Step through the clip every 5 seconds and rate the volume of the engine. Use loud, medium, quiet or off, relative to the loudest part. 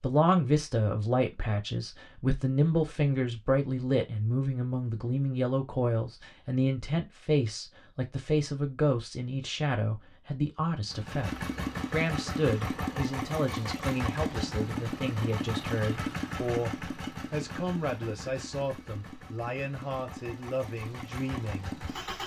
off, off, loud, loud, medium.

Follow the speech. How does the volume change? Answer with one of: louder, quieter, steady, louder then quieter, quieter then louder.
quieter.